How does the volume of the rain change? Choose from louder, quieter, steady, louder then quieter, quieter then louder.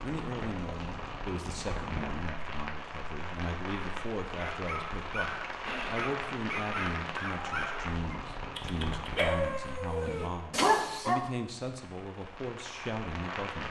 quieter.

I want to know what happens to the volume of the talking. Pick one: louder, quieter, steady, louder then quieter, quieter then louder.
steady.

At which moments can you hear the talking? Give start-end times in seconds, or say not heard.
0.0-13.6.